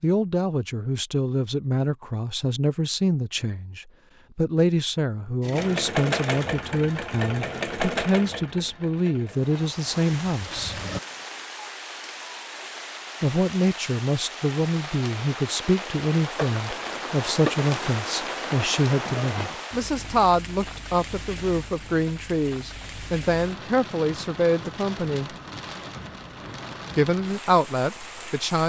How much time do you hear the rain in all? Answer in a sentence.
The rain can be heard for 19 seconds in total.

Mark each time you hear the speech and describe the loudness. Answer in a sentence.
You can hear the speech from 0.0 to 10.8 s, at a steady volume; from 13.2 to 25.3 s, at a steady volume; and briefly from 26.9 to 28.6 s.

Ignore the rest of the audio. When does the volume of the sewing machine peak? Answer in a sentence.
The loudest moment of the sewing machine is at 6 seconds.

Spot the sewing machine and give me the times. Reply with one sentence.
The sewing machine can be heard from 5.4 to 11.0 s.